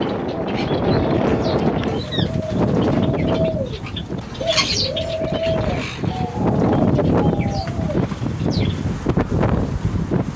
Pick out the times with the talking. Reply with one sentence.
The talking can't be heard in this clip.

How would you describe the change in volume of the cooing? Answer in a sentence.
The volume of the cooing goes up, then down.